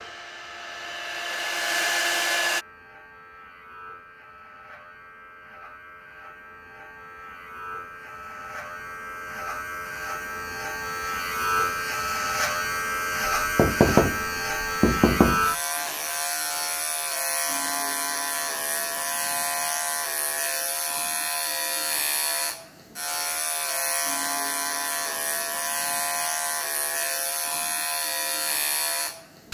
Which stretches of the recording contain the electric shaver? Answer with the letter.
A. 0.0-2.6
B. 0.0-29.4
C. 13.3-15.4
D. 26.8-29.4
B.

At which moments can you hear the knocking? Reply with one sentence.
You can hear the knocking from 13.3 to 15.4 s.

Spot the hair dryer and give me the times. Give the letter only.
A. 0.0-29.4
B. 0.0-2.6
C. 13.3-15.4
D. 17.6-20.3
B.